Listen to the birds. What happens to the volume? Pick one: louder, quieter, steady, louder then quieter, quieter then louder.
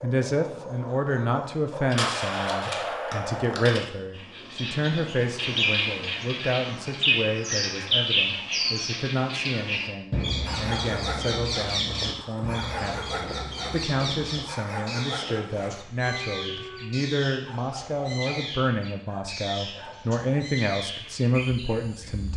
quieter.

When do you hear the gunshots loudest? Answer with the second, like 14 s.
2 s.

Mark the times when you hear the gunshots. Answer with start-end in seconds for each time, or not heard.
1.9-3.9.